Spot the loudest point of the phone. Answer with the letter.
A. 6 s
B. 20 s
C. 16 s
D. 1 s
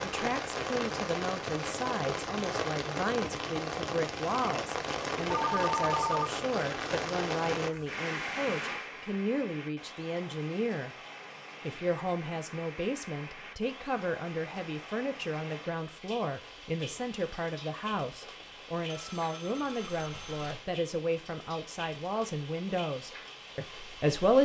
A.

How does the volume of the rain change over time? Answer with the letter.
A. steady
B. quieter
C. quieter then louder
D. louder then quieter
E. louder
B.